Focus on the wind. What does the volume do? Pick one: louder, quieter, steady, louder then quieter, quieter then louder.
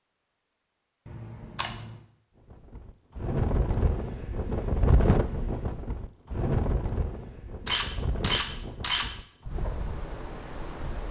quieter.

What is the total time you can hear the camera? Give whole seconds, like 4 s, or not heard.
2 s.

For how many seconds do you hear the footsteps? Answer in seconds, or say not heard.
not heard.